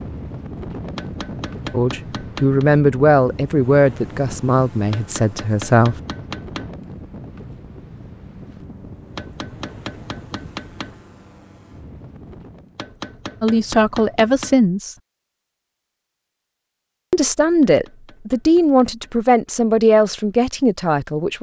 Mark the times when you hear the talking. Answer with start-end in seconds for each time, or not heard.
1.7-6.0, 13.4-14.9, 17.1-21.3.